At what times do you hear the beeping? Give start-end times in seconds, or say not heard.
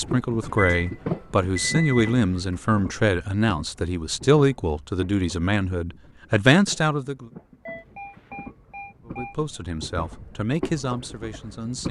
0.5-2.4, 7.7-9.5.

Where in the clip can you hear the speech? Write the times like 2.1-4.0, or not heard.
0.0-7.3, 9.1-11.8.